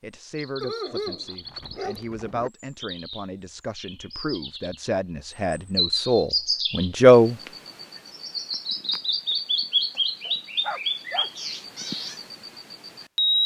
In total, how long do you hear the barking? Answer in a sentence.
The barking can be heard for 3 seconds in total.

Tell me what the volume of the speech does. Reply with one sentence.
The volume of the speech goes up.